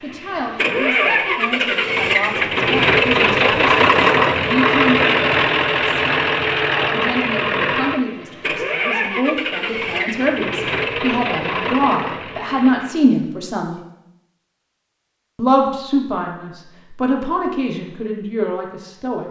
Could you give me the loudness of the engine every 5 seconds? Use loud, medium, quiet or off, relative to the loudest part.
loud, loud, medium, off.